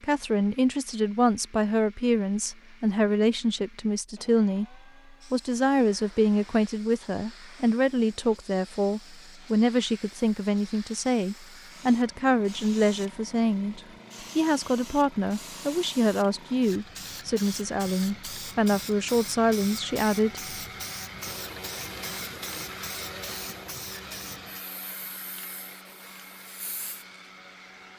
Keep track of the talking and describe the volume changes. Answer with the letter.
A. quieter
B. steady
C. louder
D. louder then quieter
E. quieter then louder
B.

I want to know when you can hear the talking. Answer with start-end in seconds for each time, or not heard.
0.0-20.4.